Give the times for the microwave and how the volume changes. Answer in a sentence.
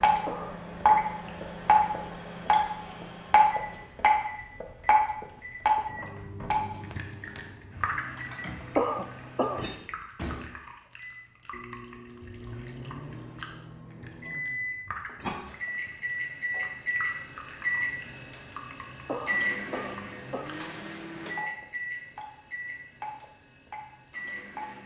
The microwave can be heard from 0.0 to 24.8 s, getting louder then quieter.